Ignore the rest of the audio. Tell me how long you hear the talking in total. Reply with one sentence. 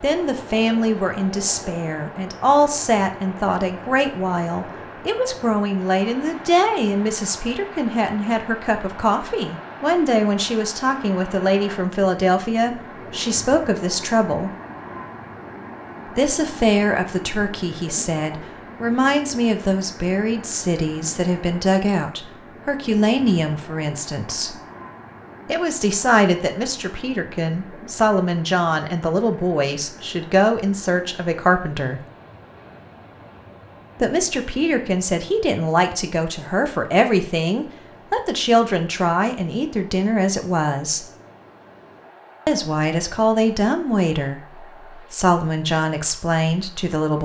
The talking can be heard for 41 seconds in total.